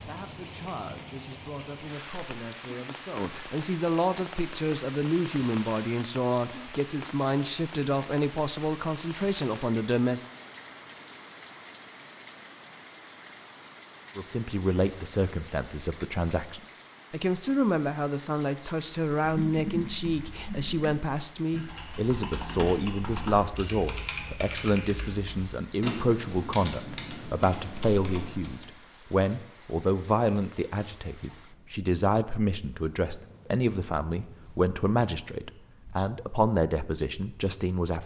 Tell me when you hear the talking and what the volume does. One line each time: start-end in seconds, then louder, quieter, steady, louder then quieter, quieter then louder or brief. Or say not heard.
0.0-10.2 louder
14.2-38.0 steady.